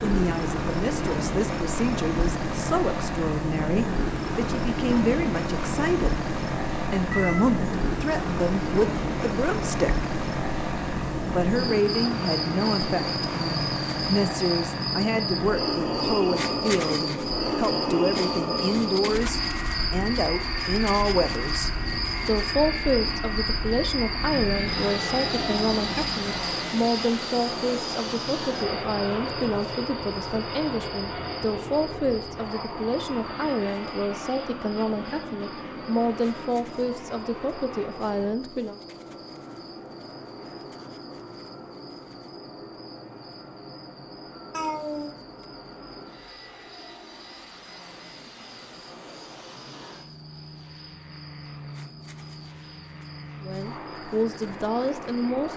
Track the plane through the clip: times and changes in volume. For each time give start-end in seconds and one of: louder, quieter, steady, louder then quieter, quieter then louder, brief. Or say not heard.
0.0-55.5 quieter.